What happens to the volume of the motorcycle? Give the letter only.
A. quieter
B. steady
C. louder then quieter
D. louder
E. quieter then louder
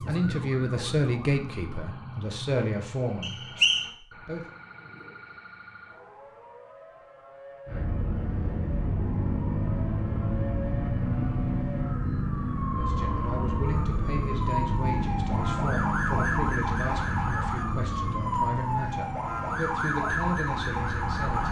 A.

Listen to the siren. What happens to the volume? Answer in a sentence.
The volume of the siren goes down, then up.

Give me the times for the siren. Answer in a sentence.
The siren can be heard from 0.0 to 21.4 s.